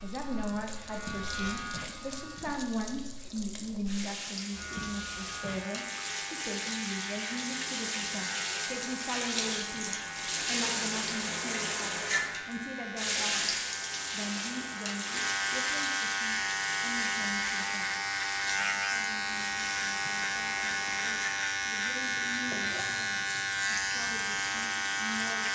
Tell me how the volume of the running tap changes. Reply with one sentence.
The loudness of the running tap goes up, then down.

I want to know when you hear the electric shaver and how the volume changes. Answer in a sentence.
You can hear the electric shaver briefly from 0.0 to 2.6 s; and from 4.5 to 25.5 s, getting louder.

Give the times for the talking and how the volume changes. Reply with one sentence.
You can hear the talking from 0.0 to 25.5 s, getting quieter.